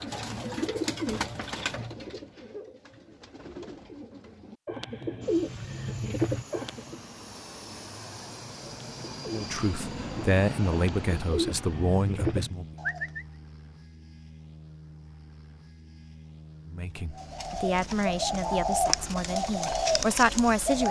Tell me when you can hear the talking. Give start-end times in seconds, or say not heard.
9.3-12.7, 16.6-20.8.